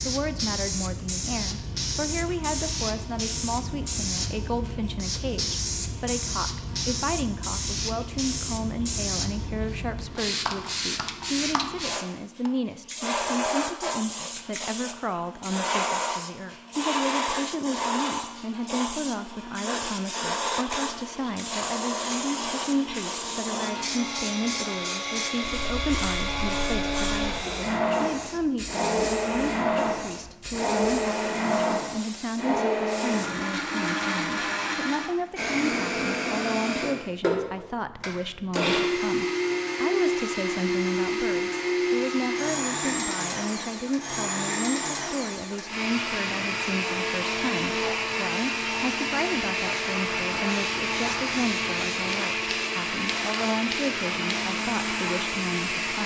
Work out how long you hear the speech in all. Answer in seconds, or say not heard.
56 s.